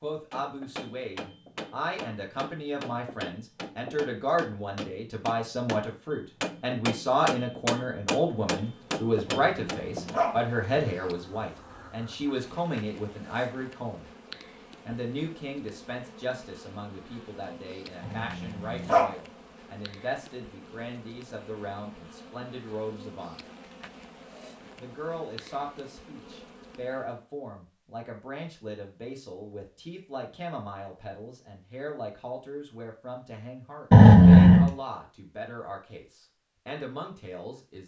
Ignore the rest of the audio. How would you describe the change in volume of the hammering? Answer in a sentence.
The loudness of the hammering goes up.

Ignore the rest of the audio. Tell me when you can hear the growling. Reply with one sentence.
You can hear the growling from 9.2 to 10.9 s, from 18.0 to 19.1 s and from 33.9 to 34.7 s.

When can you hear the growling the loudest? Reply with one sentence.
The volume of the growling peaks at 34 seconds.